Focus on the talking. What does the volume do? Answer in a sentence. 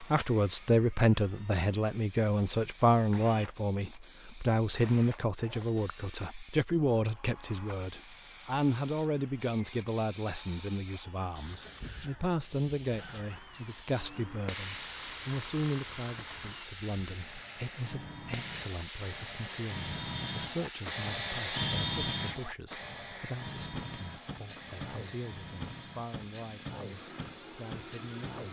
The volume of the talking goes down.